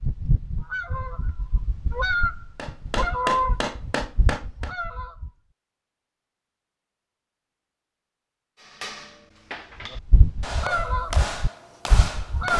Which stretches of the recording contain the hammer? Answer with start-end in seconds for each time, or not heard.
2.5-4.8, 8.6-12.5.